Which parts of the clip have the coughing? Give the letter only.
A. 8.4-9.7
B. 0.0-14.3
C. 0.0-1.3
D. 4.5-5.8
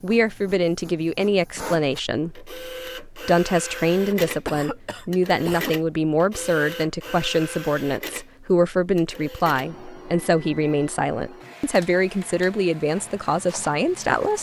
D.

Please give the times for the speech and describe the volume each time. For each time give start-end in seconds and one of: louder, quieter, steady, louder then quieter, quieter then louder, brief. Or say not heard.
0.0-14.3 steady.